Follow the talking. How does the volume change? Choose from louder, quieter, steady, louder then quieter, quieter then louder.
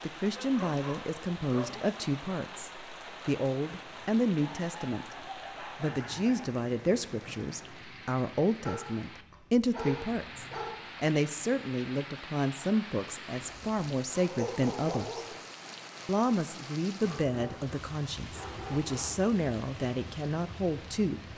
steady.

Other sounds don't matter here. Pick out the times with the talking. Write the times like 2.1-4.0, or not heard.
0.0-15.2, 16.1-21.3.